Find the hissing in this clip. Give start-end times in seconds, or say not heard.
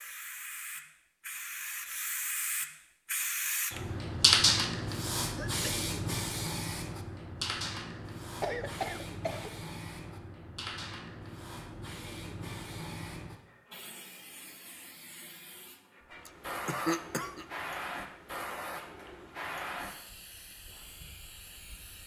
0.0-22.0.